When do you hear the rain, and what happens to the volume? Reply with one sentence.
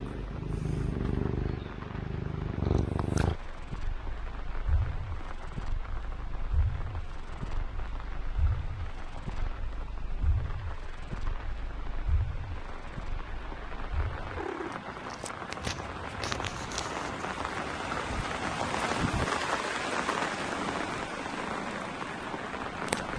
The rain can be heard from 0.0 to 23.1 s, getting louder.